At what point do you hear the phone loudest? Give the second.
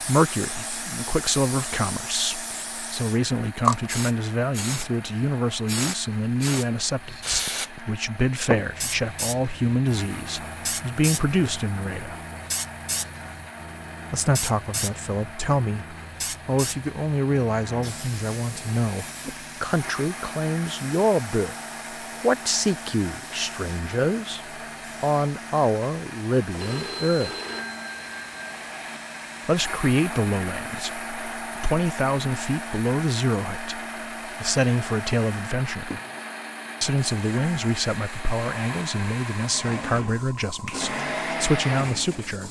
27 s.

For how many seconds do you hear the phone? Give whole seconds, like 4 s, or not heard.
2 s.